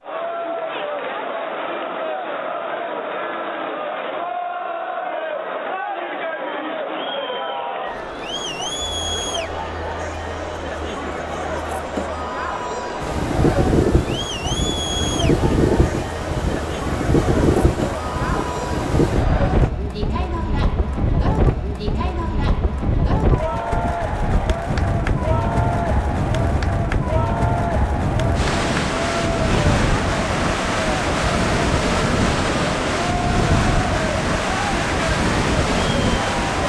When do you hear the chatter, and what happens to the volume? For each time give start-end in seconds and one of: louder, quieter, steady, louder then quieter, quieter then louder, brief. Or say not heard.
0.0-36.6 steady.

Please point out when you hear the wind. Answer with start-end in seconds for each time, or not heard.
13.0-36.6.